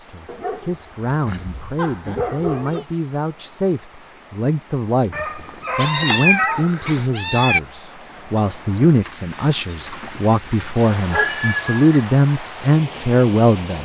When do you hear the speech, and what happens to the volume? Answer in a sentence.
You can hear the speech from 0.0 to 13.8 s, getting louder.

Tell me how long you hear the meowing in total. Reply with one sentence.
The meowing can be heard for 4 seconds in total.